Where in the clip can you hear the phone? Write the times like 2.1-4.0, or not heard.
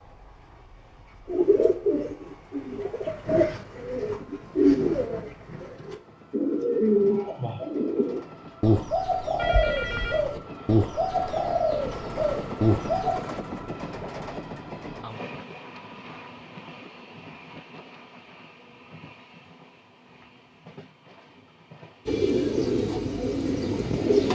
9.3-10.2.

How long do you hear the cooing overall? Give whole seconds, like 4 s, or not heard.
14 s.